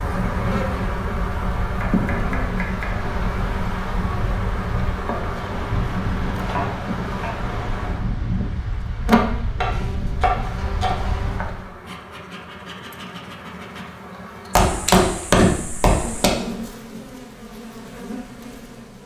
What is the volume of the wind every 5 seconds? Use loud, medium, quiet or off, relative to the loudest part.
loud, loud, loud, off.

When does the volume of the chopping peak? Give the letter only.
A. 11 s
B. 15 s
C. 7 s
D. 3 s
B.